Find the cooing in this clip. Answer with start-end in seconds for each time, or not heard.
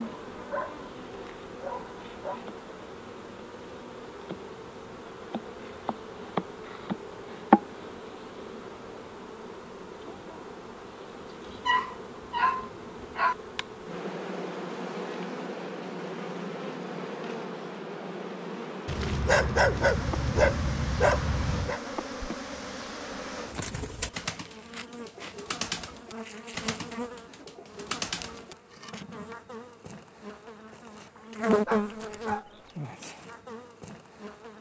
22.8-28.6.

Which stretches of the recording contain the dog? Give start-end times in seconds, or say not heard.
0.0-2.4, 11.5-13.3, 18.9-21.8, 31.1-32.7.